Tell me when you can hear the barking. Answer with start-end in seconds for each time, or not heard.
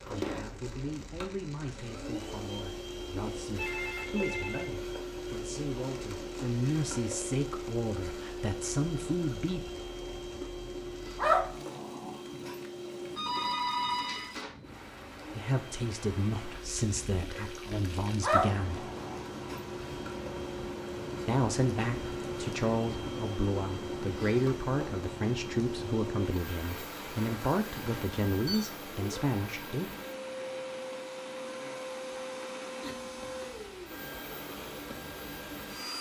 11.2-12.6, 18.2-19.6.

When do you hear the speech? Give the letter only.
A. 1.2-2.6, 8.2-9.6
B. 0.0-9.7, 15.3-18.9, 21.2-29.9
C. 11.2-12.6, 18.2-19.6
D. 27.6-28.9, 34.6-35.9
B.